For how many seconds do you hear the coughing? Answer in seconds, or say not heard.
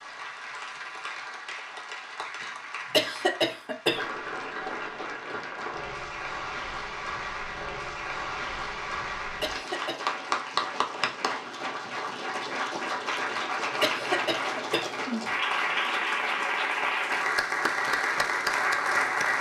3 s.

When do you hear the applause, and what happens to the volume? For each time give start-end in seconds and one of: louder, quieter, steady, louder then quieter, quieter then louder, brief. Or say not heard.
0.0-19.3 louder.